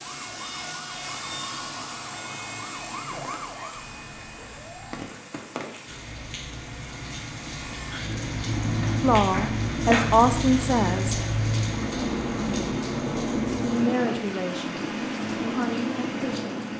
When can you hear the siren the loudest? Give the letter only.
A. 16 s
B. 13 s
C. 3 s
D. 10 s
C.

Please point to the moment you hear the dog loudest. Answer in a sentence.
The volume of the dog peaks at 10 seconds.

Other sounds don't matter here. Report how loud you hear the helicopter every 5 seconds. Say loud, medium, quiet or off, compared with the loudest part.
medium, loud, loud, loud.